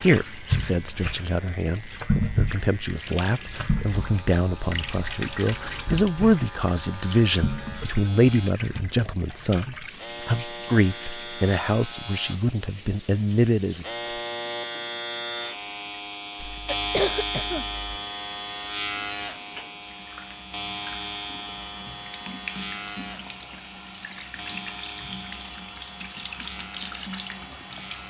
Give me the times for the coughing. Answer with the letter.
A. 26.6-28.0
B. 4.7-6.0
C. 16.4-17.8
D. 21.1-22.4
C.